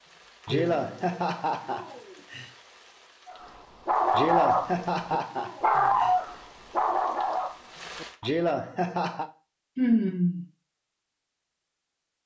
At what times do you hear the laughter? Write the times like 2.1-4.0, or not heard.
0.5-2.5, 4.1-6.2, 8.2-9.3.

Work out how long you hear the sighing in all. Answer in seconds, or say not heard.
2 s.